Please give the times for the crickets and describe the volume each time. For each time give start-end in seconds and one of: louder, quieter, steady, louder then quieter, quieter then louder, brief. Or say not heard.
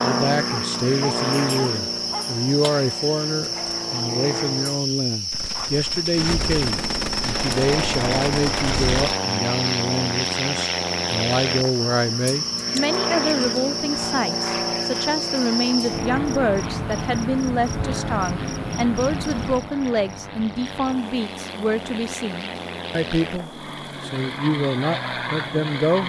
0.0-26.0 quieter.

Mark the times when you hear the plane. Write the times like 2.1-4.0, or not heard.
0.0-4.8, 7.3-26.0.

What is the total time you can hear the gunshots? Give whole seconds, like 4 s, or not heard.
4 s.